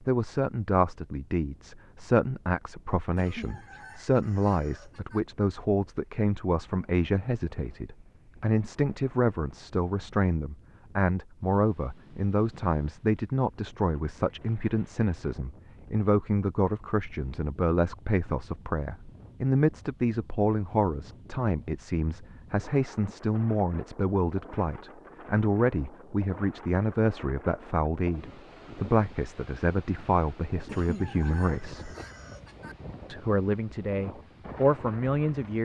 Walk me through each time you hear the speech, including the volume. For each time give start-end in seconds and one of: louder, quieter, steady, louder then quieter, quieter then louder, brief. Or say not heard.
0.1-31.9 steady
33.0-35.6 brief.